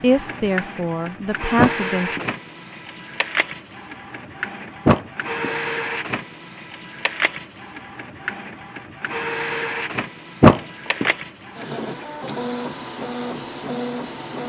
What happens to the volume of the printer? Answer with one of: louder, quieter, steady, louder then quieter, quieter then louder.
steady.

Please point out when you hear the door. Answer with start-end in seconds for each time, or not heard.
1.6-2.2, 4.8-5.5, 10.4-11.1.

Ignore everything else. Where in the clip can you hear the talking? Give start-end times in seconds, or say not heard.
0.0-2.2.